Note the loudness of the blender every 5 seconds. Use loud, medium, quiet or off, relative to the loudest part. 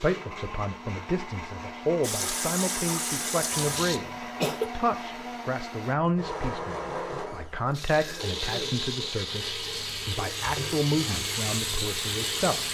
medium, loud, loud.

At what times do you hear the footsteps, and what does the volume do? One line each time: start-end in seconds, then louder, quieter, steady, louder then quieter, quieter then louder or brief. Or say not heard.
not heard.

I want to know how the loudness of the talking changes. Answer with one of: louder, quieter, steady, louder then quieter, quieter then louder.
steady.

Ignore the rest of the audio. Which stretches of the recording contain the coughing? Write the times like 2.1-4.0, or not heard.
3.5-4.7, 8.0-8.8.